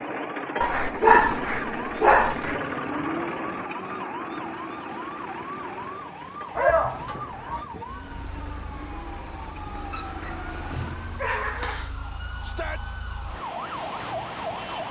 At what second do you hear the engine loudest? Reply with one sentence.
The volume of the engine peaks at 3 seconds.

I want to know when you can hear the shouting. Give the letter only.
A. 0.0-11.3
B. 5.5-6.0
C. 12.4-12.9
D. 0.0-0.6
C.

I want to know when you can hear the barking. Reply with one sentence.
The barking can be heard from 0.6 to 2.6 s, from 6.5 to 7.7 s and from 9.9 to 11.9 s.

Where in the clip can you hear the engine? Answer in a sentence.
You can hear the engine from 0.0 to 11.3 s.